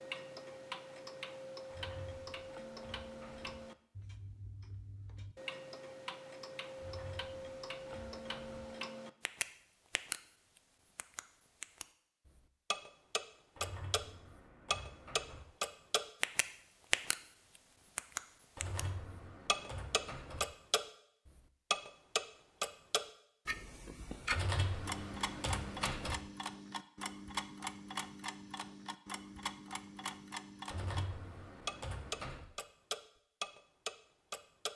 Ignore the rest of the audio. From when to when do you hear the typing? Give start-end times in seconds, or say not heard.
1.7-3.5, 6.8-8.7, 13.6-15.4, 18.6-20.4, 24.3-26.1, 30.7-32.5.